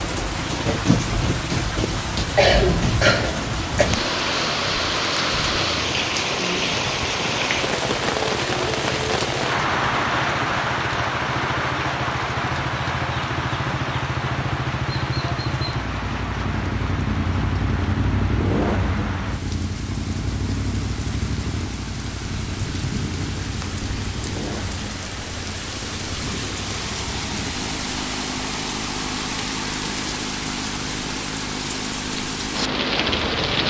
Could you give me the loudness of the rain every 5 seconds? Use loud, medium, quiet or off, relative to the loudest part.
loud, loud, loud, medium, medium, medium, loud.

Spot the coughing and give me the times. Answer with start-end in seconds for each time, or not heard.
2.4-4.0.